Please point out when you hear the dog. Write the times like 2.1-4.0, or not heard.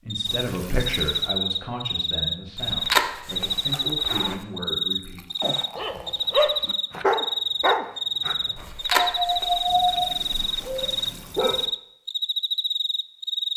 5.4-11.7.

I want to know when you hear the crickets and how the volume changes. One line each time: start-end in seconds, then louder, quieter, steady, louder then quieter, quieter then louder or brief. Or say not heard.
0.1-13.5 steady.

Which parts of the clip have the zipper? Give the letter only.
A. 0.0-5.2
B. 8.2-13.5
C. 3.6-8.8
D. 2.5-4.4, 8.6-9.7
D.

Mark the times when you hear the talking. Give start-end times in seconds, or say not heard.
0.0-5.2.